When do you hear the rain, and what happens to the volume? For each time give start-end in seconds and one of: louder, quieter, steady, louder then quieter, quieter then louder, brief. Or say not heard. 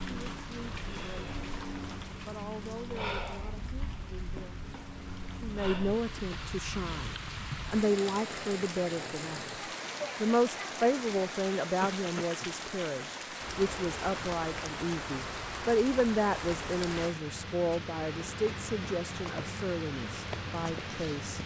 0.0-21.4 steady.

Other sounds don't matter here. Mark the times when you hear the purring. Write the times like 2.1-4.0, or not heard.
not heard.